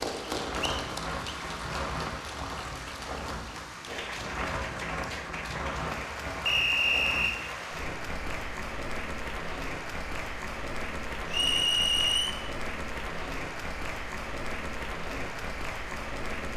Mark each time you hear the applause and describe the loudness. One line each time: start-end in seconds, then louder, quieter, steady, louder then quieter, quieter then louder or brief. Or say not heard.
0.0-16.5 steady.